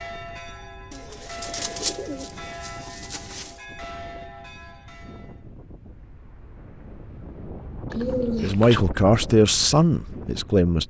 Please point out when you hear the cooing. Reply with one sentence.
You can hear the cooing from 0.9 to 3.5 s and from 7.9 to 8.8 s.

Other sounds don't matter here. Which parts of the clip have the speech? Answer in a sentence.
You can hear the speech from 8.4 to 10.8 s.